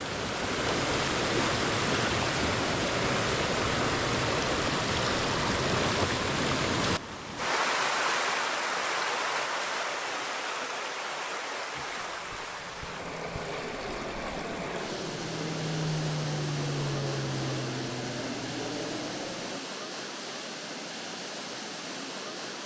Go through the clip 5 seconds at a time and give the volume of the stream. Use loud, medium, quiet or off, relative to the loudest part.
loud, loud, medium, medium, medium.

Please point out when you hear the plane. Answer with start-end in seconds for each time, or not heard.
11.8-19.6.